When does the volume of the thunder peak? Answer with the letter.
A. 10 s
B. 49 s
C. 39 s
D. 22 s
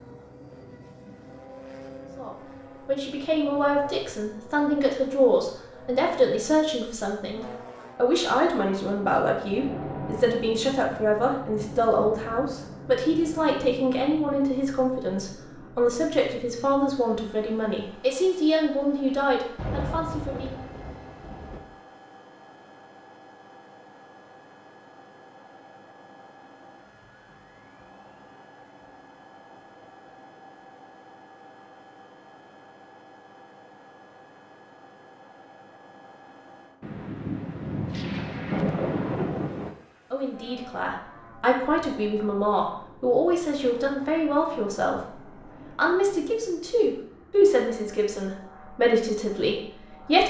C.